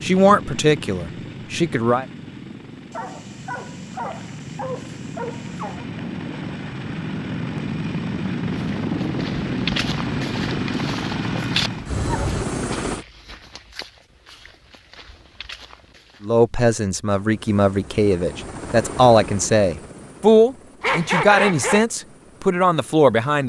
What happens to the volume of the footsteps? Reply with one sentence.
The volume of the footsteps goes down.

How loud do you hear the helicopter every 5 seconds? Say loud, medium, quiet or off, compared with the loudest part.
medium, loud, loud, medium, quiet.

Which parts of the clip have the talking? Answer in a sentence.
The talking can be heard from 0.0 to 2.0 s and from 16.2 to 23.4 s.